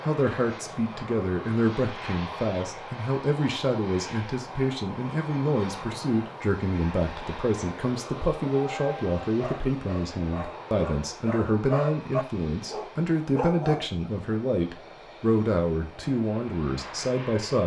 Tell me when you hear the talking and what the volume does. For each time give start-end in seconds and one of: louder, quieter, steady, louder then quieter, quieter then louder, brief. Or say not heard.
0.1-17.6 steady.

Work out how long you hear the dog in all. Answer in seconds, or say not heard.
5 s.